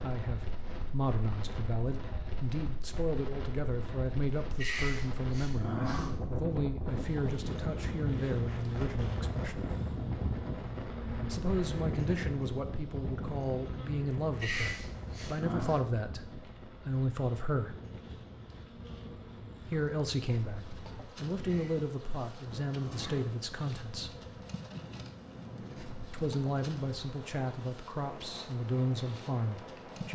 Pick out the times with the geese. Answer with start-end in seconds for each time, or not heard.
not heard.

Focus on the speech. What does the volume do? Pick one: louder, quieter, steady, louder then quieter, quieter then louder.
steady.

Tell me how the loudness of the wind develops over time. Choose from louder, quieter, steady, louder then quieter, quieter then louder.
louder then quieter.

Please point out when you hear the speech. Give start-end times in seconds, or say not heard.
0.0-9.7, 11.2-17.8, 19.6-24.1, 26.1-30.1.